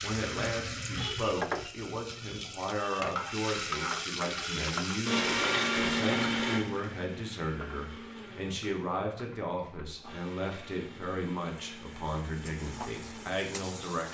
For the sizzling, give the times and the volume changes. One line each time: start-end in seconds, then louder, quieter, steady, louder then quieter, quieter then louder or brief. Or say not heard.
0.0-14.1 quieter then louder.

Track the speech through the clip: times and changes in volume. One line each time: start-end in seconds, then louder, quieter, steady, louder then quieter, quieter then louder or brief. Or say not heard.
0.0-14.1 steady.